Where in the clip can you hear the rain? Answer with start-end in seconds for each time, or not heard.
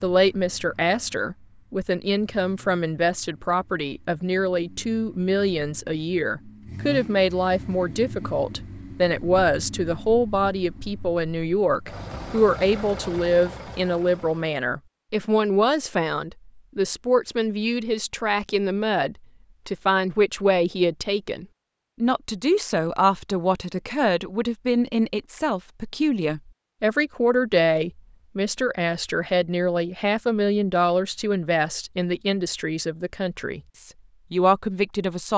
not heard.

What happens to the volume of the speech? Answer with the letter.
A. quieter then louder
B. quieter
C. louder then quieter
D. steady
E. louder
D.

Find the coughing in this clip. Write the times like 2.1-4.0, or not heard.
not heard.